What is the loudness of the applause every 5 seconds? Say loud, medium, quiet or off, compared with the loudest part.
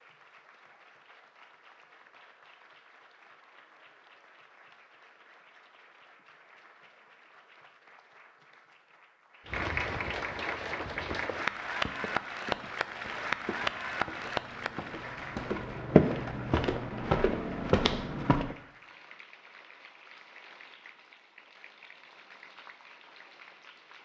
quiet, medium, loud, quiet, quiet.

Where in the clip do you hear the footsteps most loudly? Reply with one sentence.
The loudest moment of the footsteps is at 16 seconds.